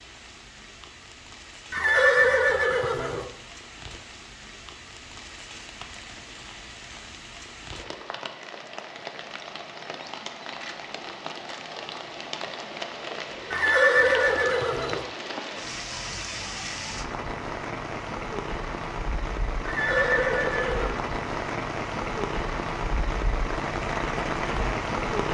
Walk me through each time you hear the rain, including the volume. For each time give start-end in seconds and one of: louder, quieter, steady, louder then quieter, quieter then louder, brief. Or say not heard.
0.0-25.2 louder.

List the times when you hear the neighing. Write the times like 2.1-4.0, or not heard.
1.7-3.2, 13.5-15.1, 19.6-20.9.